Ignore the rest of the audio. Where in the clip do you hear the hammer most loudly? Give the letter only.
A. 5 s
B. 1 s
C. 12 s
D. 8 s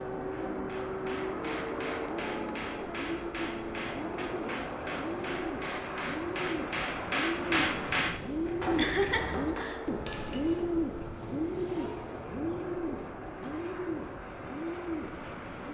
D.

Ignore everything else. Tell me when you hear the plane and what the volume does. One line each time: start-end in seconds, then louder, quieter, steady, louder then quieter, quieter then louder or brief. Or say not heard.
0.0-15.6 quieter.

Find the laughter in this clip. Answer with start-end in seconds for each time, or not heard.
8.8-9.8.